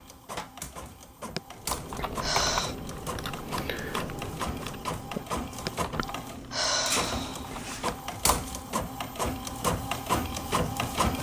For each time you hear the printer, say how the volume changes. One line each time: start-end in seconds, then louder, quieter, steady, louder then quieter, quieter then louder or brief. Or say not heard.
0.0-11.1 louder.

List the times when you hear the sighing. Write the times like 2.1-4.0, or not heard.
1.4-2.8, 5.7-8.0.